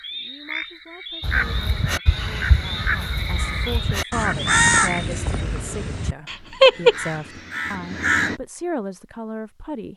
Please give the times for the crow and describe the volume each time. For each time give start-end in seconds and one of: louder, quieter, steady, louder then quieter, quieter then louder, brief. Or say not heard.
1.2-8.3 louder.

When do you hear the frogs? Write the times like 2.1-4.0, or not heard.
0.0-5.5.